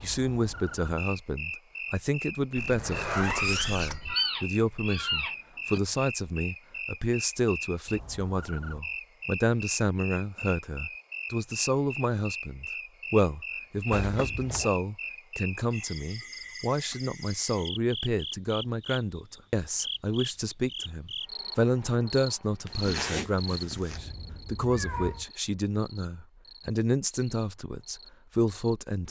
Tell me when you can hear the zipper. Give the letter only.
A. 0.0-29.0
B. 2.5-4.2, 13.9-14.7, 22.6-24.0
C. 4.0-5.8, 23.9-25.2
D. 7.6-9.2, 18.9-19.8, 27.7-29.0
B.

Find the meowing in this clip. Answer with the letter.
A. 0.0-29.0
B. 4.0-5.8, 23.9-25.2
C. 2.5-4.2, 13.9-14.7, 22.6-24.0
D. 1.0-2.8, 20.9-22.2
B.